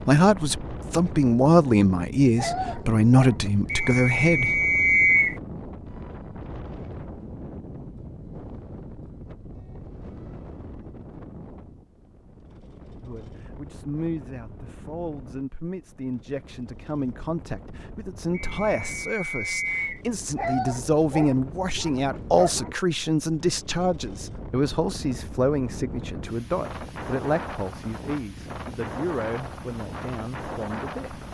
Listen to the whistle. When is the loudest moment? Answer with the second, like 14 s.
5 s.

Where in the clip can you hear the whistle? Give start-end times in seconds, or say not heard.
3.7-5.3, 18.3-20.0.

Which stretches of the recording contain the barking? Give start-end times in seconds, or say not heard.
2.4-4.0, 20.4-22.8.